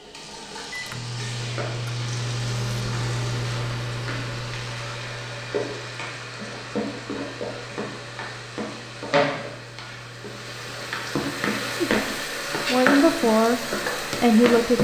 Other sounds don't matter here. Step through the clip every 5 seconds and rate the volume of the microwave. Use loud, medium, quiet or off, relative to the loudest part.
loud, quiet, quiet.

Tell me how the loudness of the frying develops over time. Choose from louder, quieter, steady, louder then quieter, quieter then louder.
louder.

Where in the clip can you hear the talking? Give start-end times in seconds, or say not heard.
11.8-13.6, 14.2-14.7.